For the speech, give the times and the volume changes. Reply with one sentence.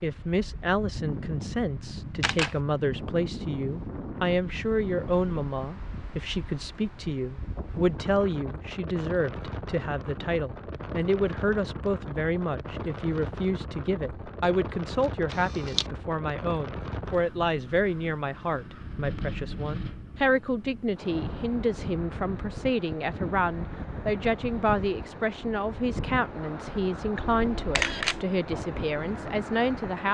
You can hear the speech from 0.0 to 30.0 s, at a steady volume.